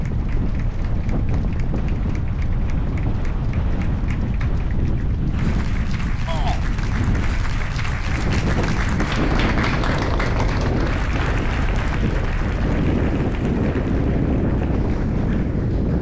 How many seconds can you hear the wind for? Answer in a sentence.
You can hear the wind for 16 seconds altogether.